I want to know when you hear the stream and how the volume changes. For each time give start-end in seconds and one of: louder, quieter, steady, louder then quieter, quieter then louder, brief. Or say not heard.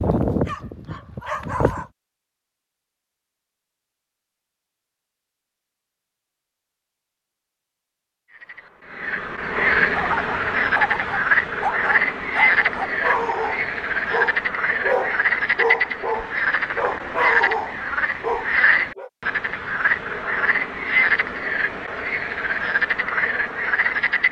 not heard.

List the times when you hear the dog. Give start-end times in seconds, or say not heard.
0.0-1.9, 9.9-19.1.